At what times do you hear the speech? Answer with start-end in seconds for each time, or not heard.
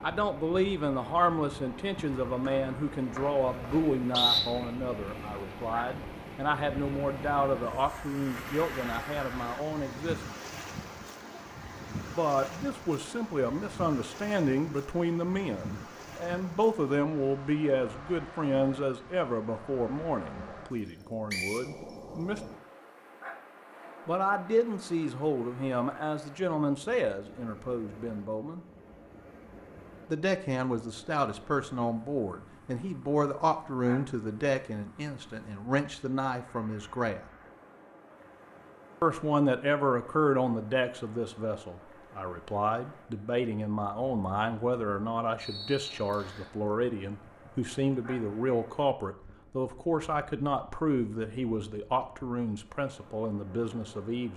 0.0-10.3, 12.2-22.4, 24.1-28.6, 30.1-37.2, 39.0-54.3.